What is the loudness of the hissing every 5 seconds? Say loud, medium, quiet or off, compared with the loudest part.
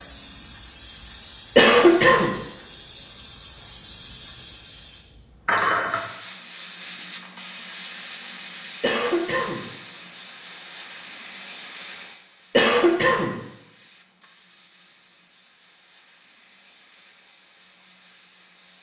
medium, loud, medium, quiet.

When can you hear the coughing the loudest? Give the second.
2 s.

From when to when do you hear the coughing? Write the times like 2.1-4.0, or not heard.
1.6-2.3, 8.8-9.7, 12.5-13.4.